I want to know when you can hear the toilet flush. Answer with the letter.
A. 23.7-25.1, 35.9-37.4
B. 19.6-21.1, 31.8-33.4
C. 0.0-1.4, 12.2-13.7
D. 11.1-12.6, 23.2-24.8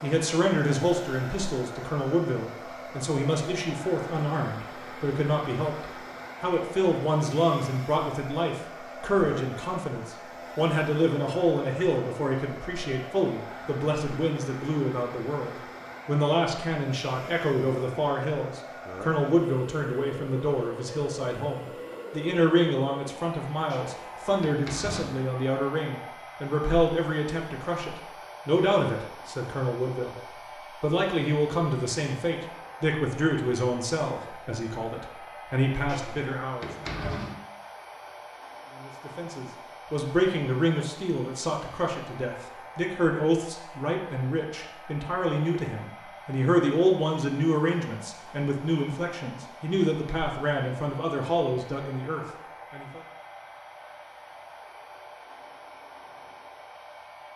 A.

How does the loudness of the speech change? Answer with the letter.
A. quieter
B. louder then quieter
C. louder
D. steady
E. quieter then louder
D.